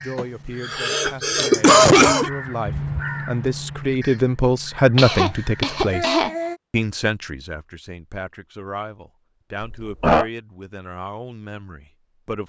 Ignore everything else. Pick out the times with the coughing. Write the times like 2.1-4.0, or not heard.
0.1-2.3, 5.0-6.5, 9.6-10.2.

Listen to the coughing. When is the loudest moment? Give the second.
2 s.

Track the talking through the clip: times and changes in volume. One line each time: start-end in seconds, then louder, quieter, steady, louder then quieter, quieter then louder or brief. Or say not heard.
0.0-12.4 louder then quieter.